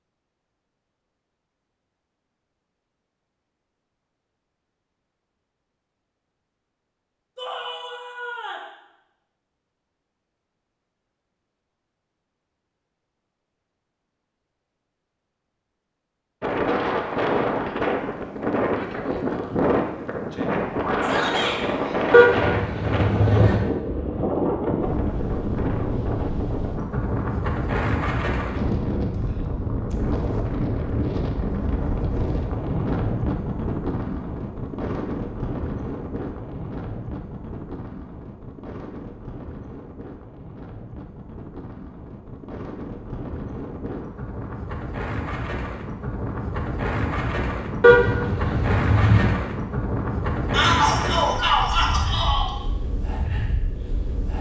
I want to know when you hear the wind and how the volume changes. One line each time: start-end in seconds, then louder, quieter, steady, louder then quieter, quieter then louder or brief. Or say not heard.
16.4-54.3 quieter then louder.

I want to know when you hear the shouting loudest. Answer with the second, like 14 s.
51 s.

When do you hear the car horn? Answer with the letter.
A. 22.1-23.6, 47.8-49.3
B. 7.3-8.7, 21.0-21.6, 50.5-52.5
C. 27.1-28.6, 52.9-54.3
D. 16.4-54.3
A.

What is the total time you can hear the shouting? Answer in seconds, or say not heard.
4 s.